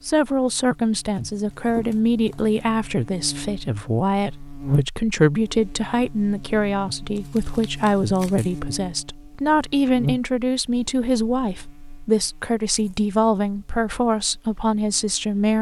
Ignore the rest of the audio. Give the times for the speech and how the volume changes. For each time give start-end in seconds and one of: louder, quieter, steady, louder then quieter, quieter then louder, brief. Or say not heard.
0.0-15.5 steady.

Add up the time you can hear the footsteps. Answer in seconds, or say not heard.
not heard.